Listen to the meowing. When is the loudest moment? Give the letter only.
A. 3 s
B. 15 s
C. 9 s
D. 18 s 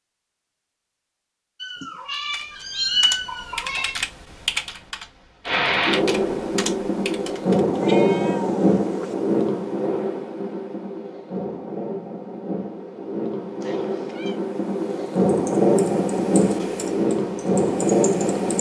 A.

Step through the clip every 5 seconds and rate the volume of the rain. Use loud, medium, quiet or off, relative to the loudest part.
off, loud, medium, loud.